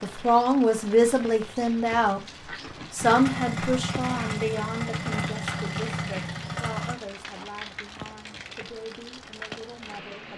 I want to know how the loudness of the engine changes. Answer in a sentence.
The loudness of the engine stays about the same.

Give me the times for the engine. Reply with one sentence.
You can hear the engine from 3.0 to 7.0 s.